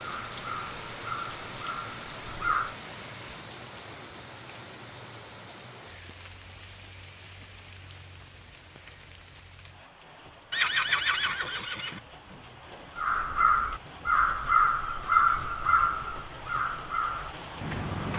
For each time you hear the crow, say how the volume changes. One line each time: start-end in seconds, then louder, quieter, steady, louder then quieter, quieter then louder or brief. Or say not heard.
0.0-2.8 brief
12.9-18.1 quieter.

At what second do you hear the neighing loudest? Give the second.
11 s.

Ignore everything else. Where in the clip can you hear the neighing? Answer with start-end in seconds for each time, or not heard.
10.5-12.0.